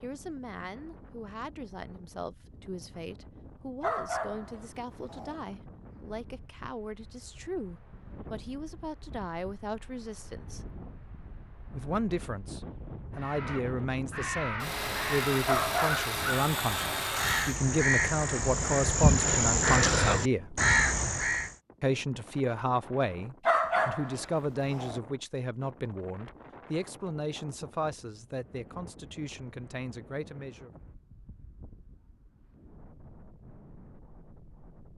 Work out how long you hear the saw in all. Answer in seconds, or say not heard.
3 s.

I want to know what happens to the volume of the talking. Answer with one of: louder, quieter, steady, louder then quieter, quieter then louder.
louder then quieter.